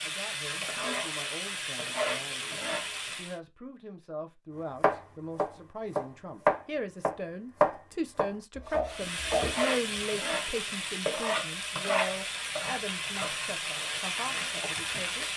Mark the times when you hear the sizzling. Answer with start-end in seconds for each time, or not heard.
0.0-3.4, 8.9-15.3.